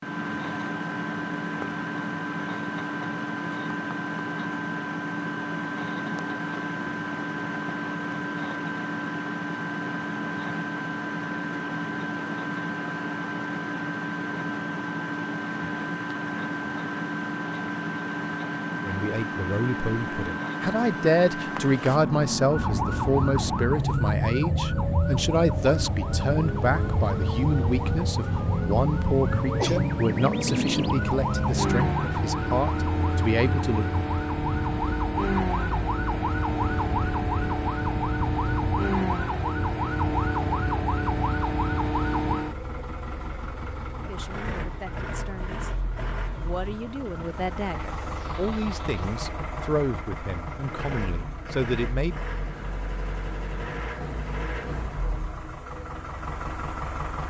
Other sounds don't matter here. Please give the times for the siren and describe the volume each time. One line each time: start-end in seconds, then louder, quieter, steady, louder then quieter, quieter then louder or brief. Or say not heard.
22.4-42.5 steady.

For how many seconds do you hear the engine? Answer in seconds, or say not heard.
57 s.